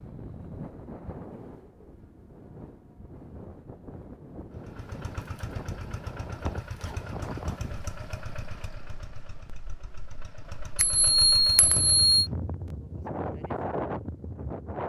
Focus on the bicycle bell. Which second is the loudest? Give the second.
12 s.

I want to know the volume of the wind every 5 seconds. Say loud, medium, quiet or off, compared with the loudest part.
medium, medium, loud.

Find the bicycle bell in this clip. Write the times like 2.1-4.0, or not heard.
10.8-12.3.